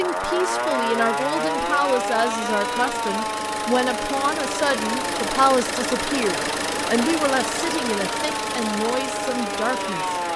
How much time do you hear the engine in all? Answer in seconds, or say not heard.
10 s.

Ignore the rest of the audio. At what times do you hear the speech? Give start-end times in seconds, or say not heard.
0.0-10.2.